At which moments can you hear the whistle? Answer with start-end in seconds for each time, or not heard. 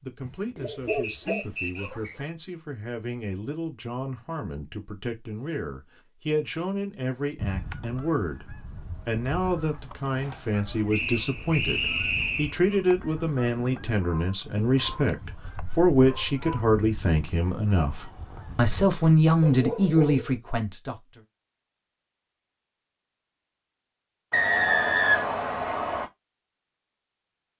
0.8-2.1, 10.9-12.6, 24.3-26.1.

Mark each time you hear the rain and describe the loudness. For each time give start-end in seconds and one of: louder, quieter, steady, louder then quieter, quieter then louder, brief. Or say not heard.
not heard.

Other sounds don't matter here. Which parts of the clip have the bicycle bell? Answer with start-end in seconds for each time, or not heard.
not heard.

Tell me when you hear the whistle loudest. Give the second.
25 s.